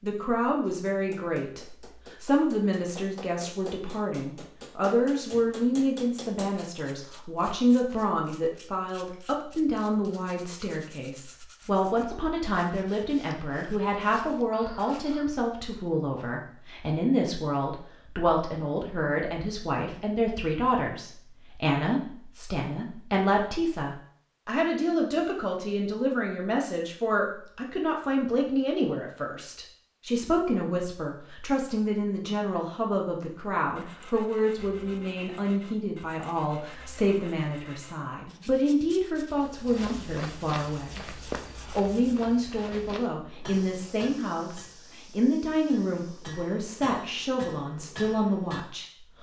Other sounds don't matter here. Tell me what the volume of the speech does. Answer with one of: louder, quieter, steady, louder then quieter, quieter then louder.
steady.